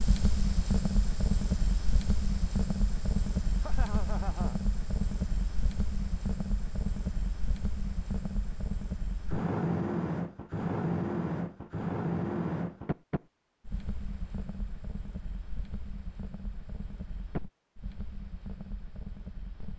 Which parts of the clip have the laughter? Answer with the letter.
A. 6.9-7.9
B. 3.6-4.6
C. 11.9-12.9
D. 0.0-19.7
B.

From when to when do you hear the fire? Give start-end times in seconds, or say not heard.
0.0-19.7.